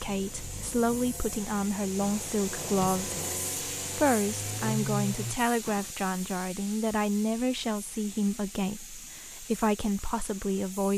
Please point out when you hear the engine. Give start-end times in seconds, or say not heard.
0.0-5.4.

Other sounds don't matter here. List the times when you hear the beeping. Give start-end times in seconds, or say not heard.
not heard.